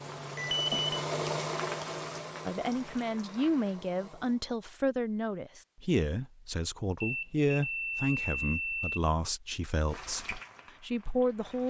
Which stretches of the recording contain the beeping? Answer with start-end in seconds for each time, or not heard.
0.1-0.9, 7.0-9.0.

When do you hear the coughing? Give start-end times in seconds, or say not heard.
not heard.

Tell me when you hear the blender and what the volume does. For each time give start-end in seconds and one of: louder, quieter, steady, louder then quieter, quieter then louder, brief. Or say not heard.
0.0-4.5 quieter.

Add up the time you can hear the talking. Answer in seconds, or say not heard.
9 s.